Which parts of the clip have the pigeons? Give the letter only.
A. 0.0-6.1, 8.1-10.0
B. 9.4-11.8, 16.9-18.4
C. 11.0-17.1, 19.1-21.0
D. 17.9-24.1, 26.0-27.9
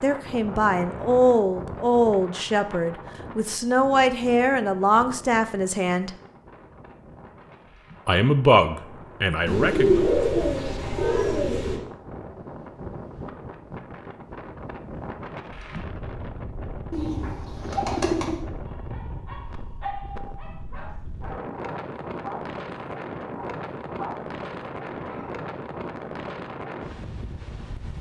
B.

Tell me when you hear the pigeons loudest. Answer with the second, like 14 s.
10 s.